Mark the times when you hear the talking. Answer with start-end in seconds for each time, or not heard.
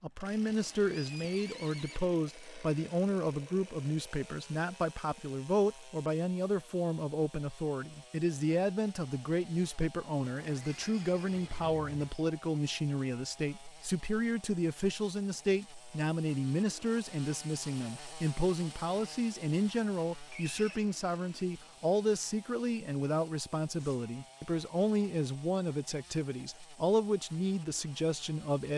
0.0-28.7.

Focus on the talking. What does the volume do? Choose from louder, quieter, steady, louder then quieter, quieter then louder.
steady.